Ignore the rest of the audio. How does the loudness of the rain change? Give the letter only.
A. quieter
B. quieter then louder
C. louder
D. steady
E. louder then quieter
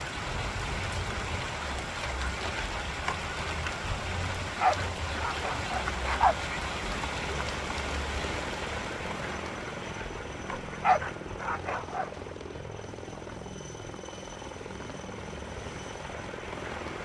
A.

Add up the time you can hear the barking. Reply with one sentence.
You can hear the barking for 4 seconds altogether.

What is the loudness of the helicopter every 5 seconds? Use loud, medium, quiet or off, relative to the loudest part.
off, loud, loud, loud.